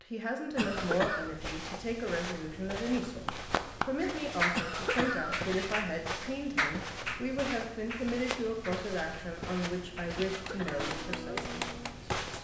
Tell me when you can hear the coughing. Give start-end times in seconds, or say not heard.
0.6-1.4, 4.5-5.8, 10.3-10.8.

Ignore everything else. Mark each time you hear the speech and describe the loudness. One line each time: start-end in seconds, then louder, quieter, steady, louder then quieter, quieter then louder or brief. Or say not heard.
0.0-12.1 steady.